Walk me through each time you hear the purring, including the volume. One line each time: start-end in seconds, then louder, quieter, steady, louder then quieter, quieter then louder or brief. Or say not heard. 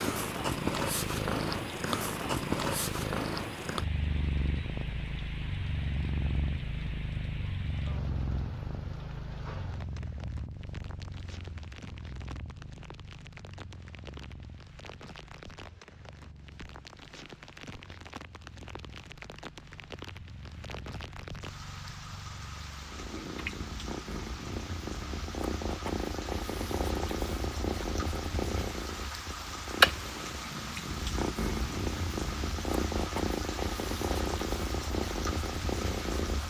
0.0-36.4 quieter then louder.